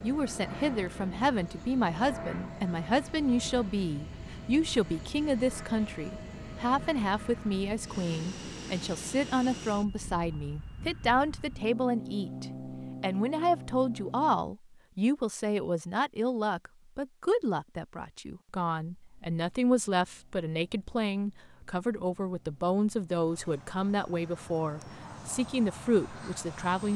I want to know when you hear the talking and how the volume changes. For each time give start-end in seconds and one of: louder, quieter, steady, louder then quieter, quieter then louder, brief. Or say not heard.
0.0-26.9 steady.